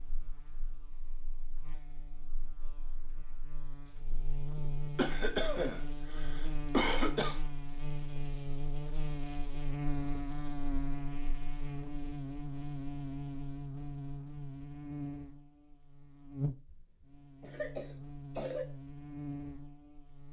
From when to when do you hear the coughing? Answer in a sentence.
You can hear the coughing from 5.0 to 7.4 s and from 16.6 to 18.6 s.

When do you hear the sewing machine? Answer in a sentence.
The sewing machine can't be heard in this clip.